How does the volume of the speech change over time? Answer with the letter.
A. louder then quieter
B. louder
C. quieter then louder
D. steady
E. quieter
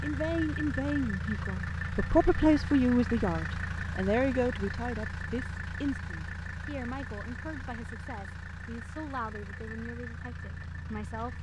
E.